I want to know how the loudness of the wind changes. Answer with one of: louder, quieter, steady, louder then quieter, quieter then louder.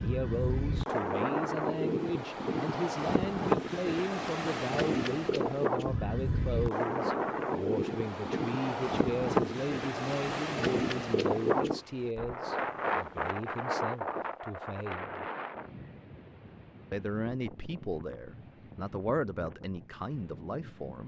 quieter.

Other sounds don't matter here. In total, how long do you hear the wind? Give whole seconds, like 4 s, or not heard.
21 s.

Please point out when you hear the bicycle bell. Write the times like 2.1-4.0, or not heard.
not heard.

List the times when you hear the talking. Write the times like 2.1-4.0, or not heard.
0.0-15.2, 16.9-21.0.